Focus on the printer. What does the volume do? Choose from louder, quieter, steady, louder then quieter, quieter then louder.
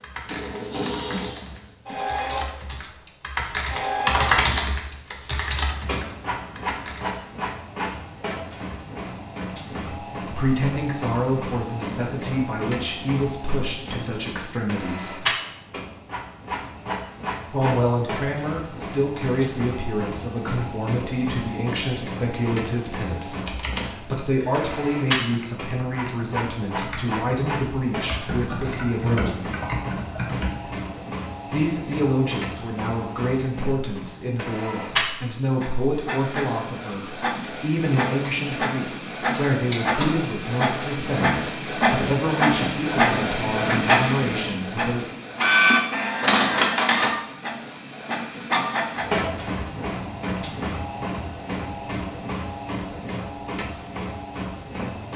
louder.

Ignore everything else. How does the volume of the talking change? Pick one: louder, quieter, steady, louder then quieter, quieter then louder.
steady.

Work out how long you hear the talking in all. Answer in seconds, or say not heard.
31 s.